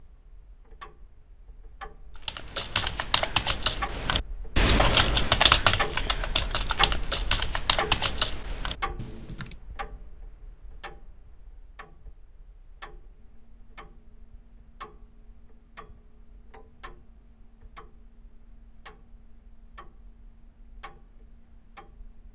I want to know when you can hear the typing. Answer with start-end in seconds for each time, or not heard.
2.2-9.6.